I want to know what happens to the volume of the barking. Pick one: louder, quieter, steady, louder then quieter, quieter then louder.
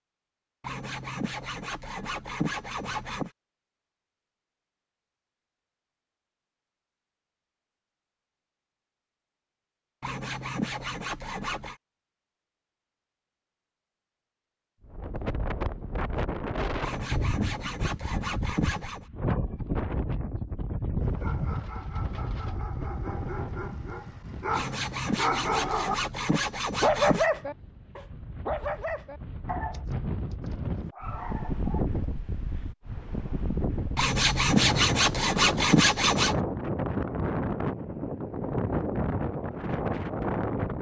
louder then quieter.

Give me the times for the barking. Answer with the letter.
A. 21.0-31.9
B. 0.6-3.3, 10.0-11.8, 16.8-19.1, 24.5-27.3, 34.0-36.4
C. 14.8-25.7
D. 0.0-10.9
A.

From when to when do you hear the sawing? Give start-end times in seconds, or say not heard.
0.6-3.3, 10.0-11.8, 16.8-19.1, 24.5-27.3, 34.0-36.4.